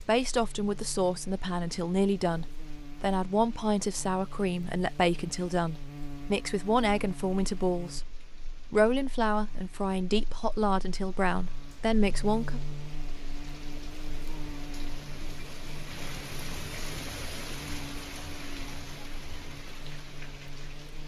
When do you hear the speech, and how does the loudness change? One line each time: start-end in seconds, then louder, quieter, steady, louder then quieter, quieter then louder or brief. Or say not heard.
0.1-12.6 steady.